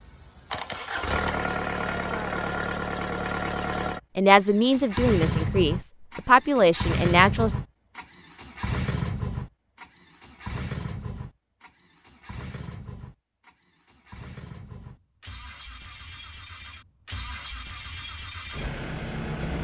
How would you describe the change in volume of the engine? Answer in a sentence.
The loudness of the engine goes down, then up.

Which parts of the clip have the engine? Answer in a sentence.
You can hear the engine from 0.0 to 19.6 s.